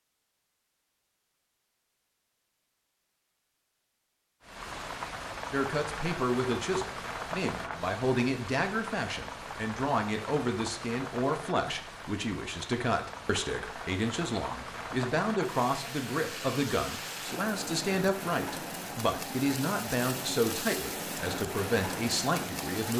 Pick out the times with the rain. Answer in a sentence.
The rain can be heard from 4.4 to 22.9 s.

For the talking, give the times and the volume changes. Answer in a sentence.
The talking can be heard from 5.5 to 22.9 s, at a steady volume.